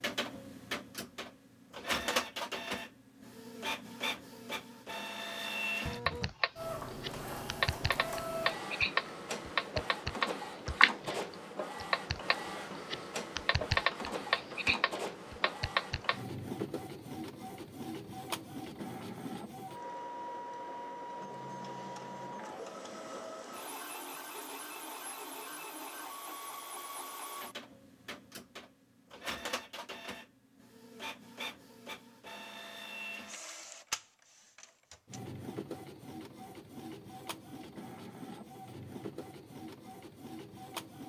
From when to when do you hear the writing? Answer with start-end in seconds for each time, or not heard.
not heard.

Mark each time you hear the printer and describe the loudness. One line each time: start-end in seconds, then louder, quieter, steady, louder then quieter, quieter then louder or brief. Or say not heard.
0.0-41.0 quieter.